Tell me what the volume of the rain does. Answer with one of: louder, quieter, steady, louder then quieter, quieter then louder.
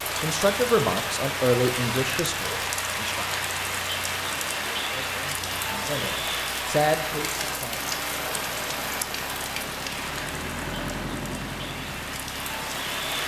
quieter.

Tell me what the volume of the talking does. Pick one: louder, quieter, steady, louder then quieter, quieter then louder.
quieter then louder.